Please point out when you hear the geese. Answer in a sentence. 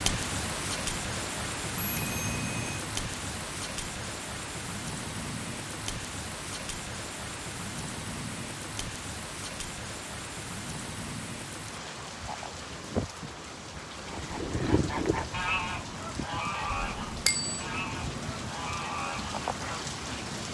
You can hear the geese from 14.1 to 19.9 s.